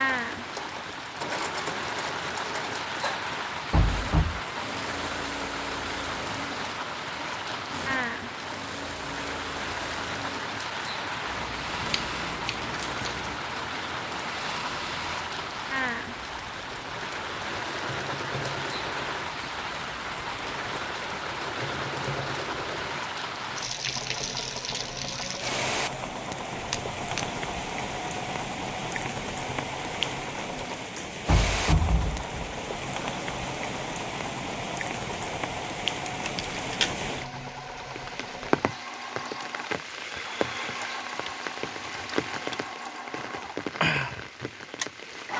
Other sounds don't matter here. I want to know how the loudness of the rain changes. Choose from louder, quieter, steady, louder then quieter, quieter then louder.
steady.